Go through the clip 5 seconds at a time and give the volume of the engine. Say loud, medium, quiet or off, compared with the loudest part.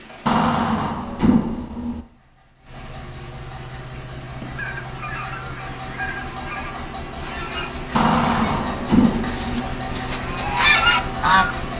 medium, loud, loud.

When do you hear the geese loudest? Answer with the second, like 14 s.
11 s.